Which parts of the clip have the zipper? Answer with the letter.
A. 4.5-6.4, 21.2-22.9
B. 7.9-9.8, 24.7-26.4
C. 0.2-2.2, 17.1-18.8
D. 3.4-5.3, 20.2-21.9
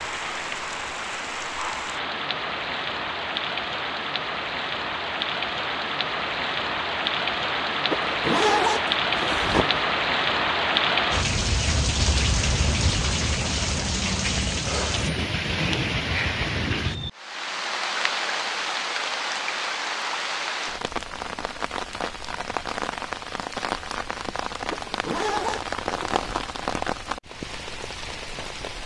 B.